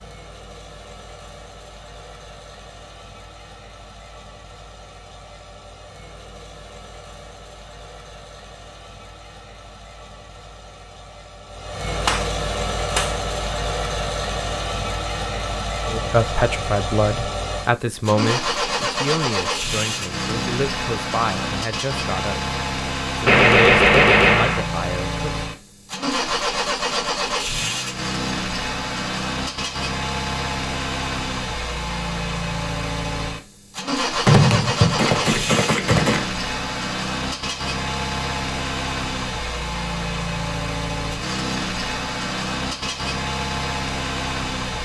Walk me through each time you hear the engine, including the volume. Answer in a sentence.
You can hear the engine from 0.0 to 44.8 s, getting louder.